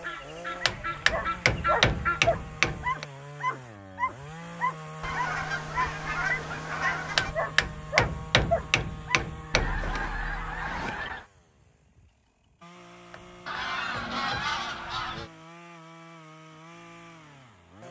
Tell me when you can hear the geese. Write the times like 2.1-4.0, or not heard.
0.0-2.2, 5.0-7.3, 9.5-11.2, 13.4-15.3.